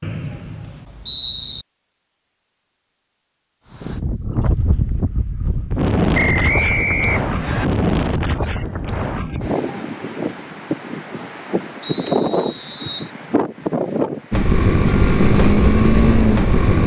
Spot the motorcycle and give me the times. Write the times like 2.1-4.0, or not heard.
14.3-16.8.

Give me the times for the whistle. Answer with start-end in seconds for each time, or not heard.
0.0-1.6, 6.1-7.7, 11.8-13.1.